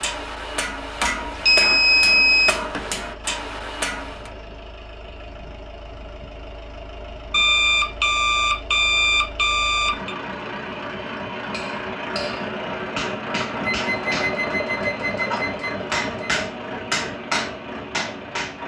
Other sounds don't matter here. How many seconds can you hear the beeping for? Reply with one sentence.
You can hear the beeping for 7 seconds altogether.